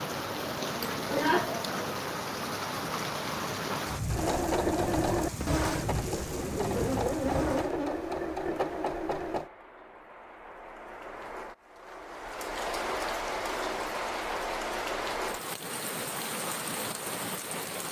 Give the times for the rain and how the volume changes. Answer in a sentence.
You can hear the rain from 0.0 to 17.8 s, getting quieter then louder.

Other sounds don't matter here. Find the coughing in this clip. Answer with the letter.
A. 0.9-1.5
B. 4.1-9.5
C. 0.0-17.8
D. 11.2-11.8
A.